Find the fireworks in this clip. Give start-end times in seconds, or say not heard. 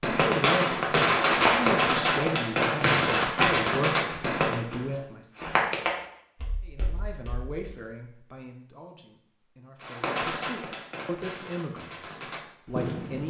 0.0-4.6, 9.8-13.2.